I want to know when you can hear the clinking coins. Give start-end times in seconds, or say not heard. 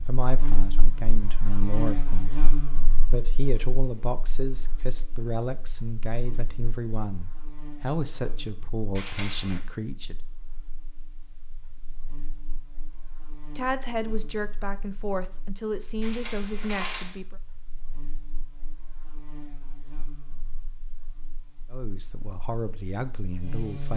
8.9-9.6, 16.0-17.1.